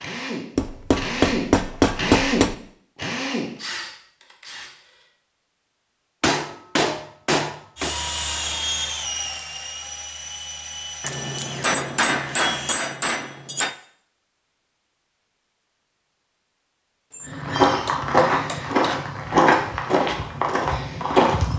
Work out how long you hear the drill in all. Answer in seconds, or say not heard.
10 s.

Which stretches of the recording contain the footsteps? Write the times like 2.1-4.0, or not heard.
17.2-21.5.